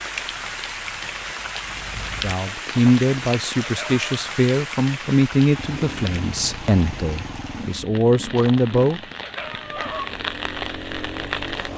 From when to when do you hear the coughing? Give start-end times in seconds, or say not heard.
not heard.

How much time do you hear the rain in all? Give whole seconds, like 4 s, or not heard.
12 s.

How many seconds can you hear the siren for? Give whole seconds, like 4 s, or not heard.
not heard.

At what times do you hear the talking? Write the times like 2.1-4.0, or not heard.
2.1-9.0.